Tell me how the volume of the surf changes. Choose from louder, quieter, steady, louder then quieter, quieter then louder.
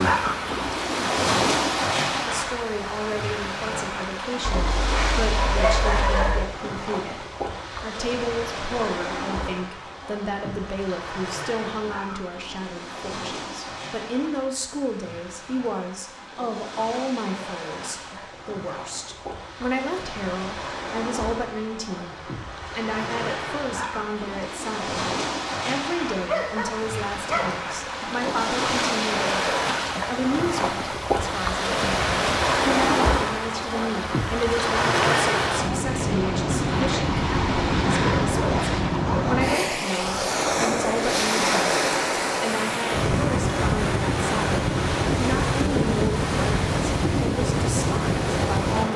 quieter then louder.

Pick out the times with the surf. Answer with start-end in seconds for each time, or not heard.
0.0-48.9.